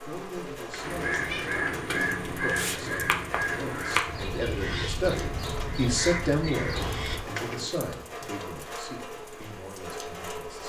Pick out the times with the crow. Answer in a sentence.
You can hear the crow from 0.8 to 7.2 s.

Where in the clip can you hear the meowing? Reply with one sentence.
You can hear the meowing from 0.1 to 1.6 s and from 6.7 to 7.7 s.